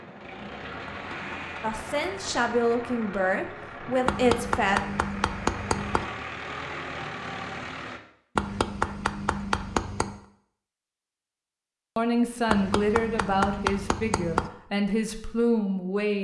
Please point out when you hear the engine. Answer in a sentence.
You can hear the engine from 0.0 to 8.0 s.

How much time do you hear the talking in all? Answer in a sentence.
You can hear the talking for 7 seconds altogether.